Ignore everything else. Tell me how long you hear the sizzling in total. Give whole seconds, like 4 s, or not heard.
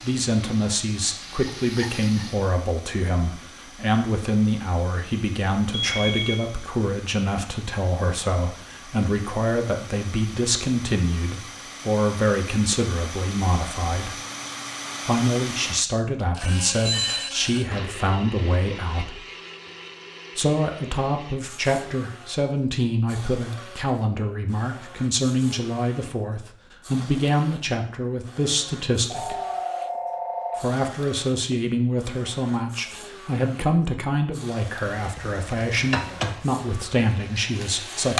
6 s.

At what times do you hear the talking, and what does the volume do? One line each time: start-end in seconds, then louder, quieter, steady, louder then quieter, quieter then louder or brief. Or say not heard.
0.0-14.2 steady
15.1-19.2 steady
20.4-29.4 steady
30.6-38.1 steady.